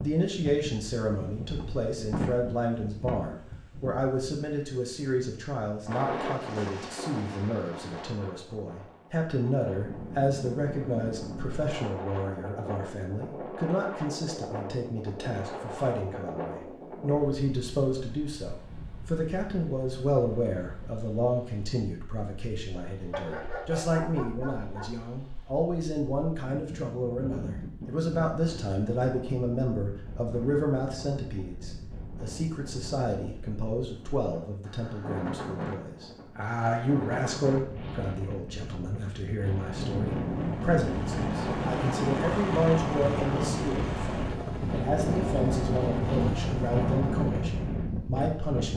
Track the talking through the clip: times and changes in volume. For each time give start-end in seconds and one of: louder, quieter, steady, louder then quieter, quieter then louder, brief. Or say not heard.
0.0-48.7 steady.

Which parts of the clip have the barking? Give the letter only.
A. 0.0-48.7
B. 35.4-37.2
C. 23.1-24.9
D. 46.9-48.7
C.